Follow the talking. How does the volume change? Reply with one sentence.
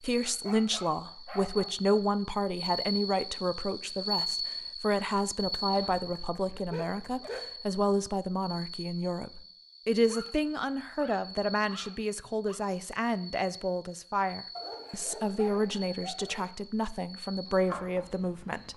The loudness of the talking stays about the same.